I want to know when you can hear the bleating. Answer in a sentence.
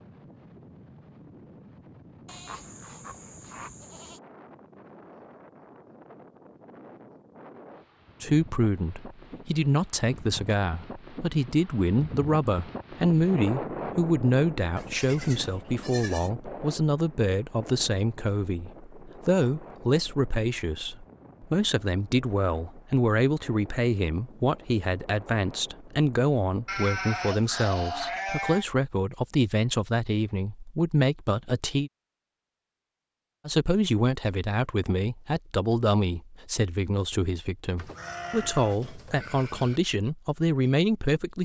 You can hear the bleating from 2.2 to 4.2 s, from 14.8 to 16.3 s, from 26.6 to 28.6 s and from 37.8 to 39.8 s.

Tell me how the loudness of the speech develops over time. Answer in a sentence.
The loudness of the speech stays about the same.